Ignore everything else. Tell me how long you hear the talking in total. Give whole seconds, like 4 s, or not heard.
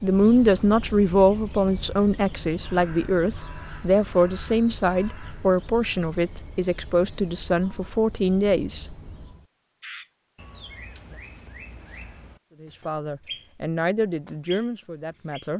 12 s.